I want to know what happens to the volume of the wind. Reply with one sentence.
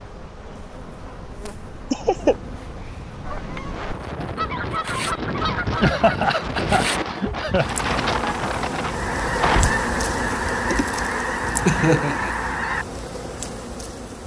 The volume of the wind goes up.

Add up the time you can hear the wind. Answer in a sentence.
The wind can be heard for 10 seconds in total.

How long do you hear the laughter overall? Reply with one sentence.
You can hear the laughter for 3 seconds altogether.